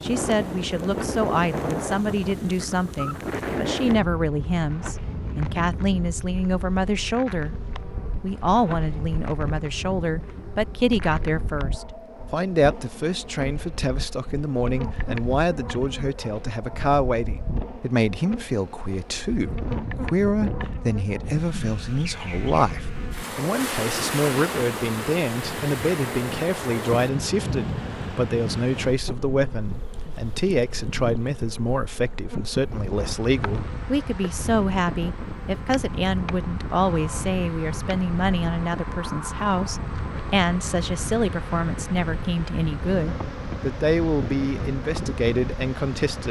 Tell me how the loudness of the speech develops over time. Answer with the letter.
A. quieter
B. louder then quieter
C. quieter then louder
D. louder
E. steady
E.